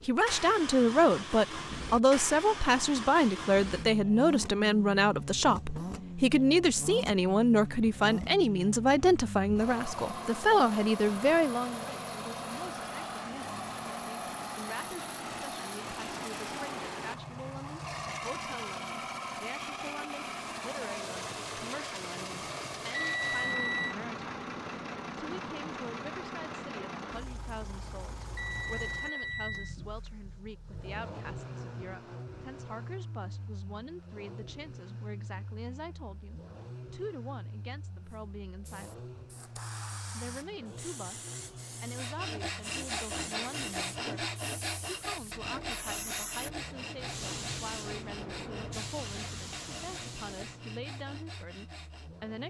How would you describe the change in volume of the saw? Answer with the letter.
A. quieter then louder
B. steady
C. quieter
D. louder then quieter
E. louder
C.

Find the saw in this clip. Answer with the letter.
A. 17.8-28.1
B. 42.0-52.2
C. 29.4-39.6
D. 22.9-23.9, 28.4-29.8
B.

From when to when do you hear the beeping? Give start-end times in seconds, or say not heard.
22.9-23.9, 28.4-29.8.